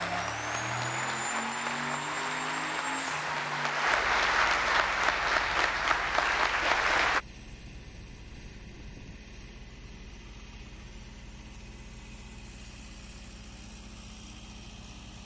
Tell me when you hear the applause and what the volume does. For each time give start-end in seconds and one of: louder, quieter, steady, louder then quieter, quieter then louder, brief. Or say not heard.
0.0-7.2 louder.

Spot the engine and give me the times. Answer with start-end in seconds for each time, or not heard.
0.0-15.2.